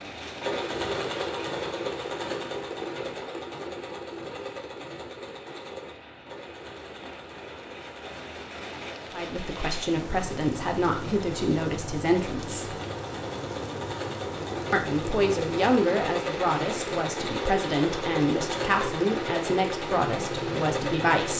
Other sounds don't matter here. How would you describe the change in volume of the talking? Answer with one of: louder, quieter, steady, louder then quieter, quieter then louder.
steady.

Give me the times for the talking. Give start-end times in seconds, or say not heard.
9.1-12.8, 14.7-21.3.